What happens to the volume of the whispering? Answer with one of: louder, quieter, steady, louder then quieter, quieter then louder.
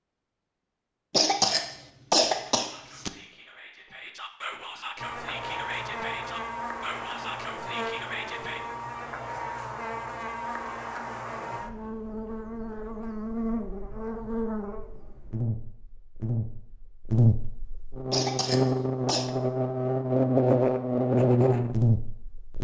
louder.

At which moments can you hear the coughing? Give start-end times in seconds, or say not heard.
1.1-3.1, 18.1-19.4.